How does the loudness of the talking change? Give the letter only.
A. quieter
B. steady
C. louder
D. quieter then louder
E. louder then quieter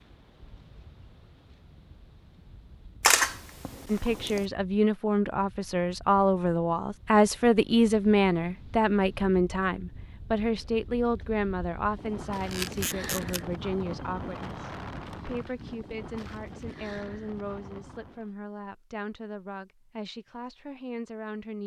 A.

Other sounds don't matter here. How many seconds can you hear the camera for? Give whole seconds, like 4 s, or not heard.
2 s.